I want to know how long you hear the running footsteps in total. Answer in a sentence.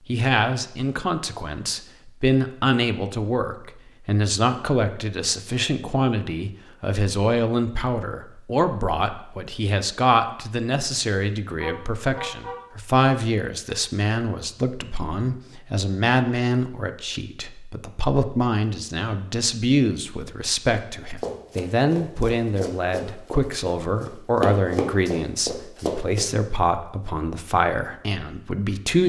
You can hear the running footsteps for 5 seconds altogether.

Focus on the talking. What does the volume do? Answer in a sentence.
The loudness of the talking stays about the same.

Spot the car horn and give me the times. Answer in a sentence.
The car horn can be heard from 11.6 to 12.6 s.